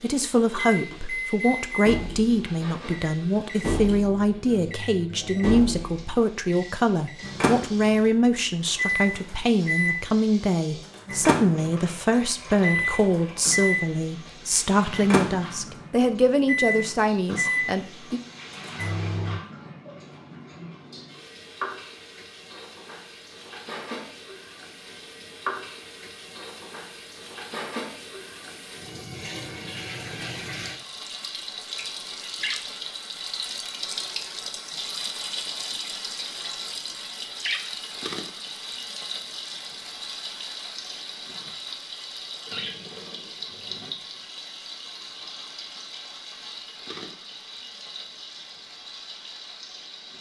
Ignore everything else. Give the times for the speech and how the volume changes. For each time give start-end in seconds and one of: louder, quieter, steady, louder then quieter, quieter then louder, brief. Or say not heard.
0.0-18.2 steady.